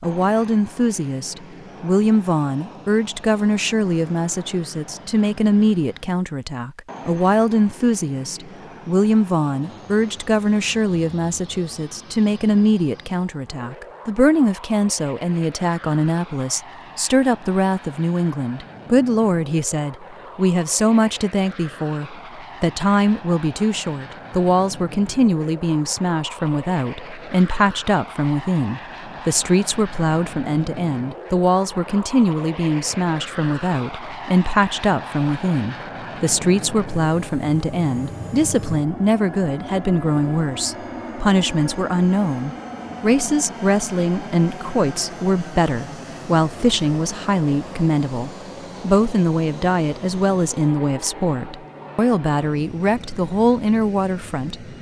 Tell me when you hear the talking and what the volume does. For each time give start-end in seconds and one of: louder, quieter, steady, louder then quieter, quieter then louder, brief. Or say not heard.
0.0-54.7 steady.